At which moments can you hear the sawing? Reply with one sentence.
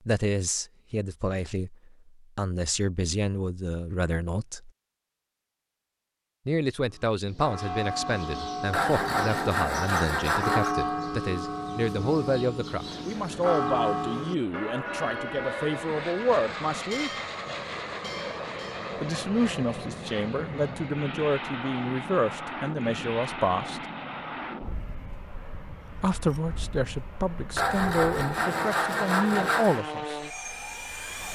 You can hear the sawing from 8.7 to 10.8 s and from 27.6 to 29.9 s.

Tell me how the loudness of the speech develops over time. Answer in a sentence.
The loudness of the speech stays about the same.